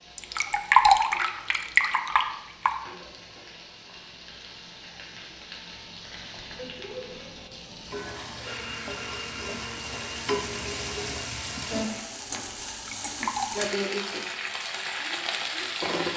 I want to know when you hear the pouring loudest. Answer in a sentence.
The volume of the pouring peaks at 1 second.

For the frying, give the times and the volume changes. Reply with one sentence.
You can hear the frying from 0.0 to 16.1 s, getting louder.